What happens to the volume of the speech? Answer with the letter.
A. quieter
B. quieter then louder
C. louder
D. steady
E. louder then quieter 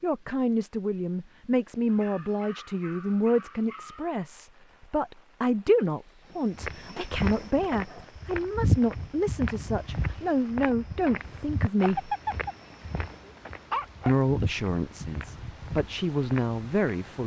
D.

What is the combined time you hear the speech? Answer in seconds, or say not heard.
15 s.